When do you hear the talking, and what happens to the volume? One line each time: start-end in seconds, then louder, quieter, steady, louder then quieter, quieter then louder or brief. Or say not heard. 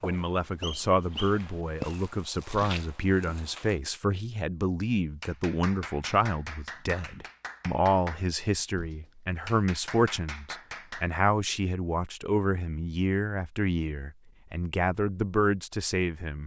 0.0-16.4 steady.